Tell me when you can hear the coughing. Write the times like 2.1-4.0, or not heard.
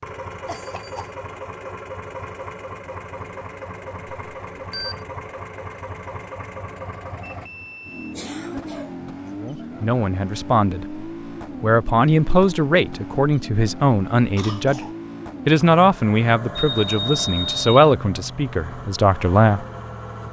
0.5-1.1, 8.1-9.0, 14.3-14.9.